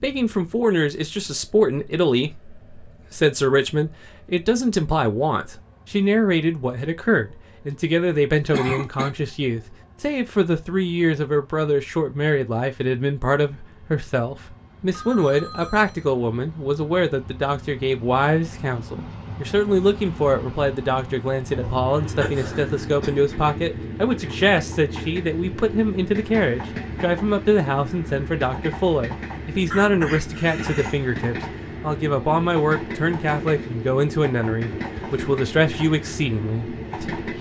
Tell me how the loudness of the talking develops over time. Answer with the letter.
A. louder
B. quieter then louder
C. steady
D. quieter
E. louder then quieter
C.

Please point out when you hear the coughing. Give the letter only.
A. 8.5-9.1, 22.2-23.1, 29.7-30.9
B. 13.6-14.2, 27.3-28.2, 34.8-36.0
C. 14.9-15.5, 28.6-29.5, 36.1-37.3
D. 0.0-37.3
A.